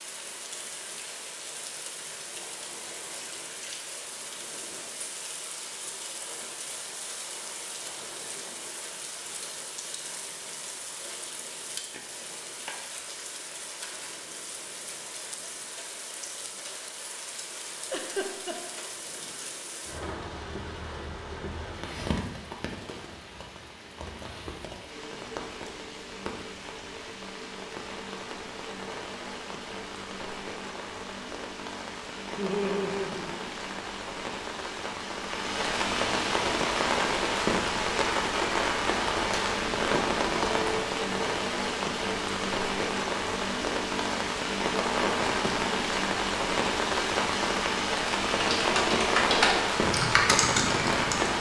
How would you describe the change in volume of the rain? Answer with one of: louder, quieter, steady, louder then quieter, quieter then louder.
louder.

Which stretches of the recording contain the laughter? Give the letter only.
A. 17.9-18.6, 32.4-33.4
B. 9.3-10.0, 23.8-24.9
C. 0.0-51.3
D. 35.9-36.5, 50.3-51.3
A.